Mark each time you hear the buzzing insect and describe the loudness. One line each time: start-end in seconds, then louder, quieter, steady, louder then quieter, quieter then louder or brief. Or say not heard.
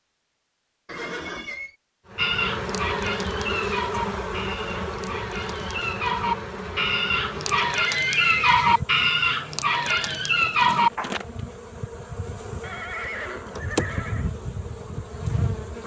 2.1-15.8 quieter then louder.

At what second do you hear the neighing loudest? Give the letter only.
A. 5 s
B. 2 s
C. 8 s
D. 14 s
C.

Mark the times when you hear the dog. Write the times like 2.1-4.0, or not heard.
2.1-11.2.